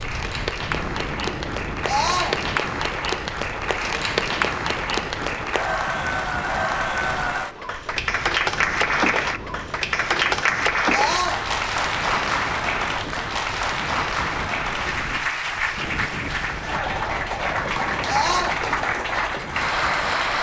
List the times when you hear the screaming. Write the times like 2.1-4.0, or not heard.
1.9-2.4, 10.9-11.4, 18.1-18.6.